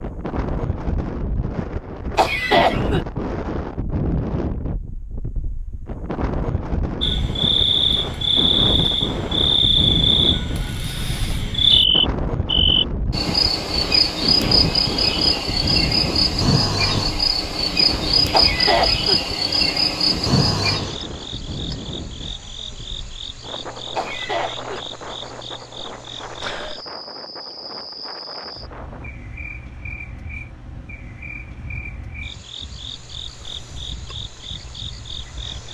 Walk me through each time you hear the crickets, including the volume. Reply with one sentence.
The crickets can be heard from 7.0 to 35.7 s, getting quieter.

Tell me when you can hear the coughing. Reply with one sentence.
You can hear the coughing from 2.1 to 3.0 s, from 18.3 to 19.2 s and from 23.9 to 24.8 s.